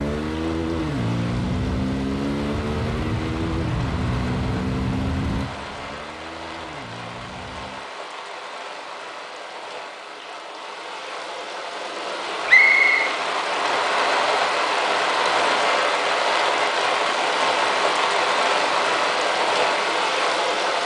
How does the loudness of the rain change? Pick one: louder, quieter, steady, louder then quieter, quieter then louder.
louder.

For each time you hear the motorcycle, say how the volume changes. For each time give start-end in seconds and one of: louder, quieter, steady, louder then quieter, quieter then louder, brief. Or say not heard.
0.0-7.9 quieter.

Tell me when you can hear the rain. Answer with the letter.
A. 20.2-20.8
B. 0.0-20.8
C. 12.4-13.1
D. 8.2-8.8
B.